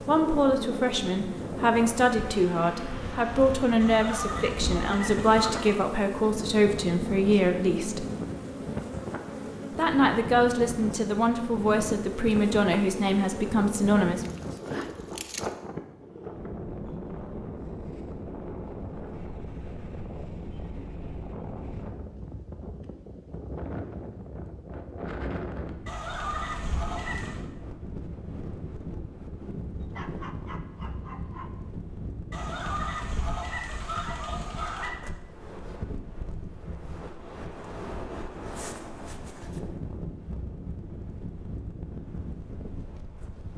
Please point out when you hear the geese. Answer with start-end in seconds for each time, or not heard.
3.8-5.8, 25.9-27.4, 32.3-34.9.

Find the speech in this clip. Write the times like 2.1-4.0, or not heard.
0.1-8.1, 9.8-14.2.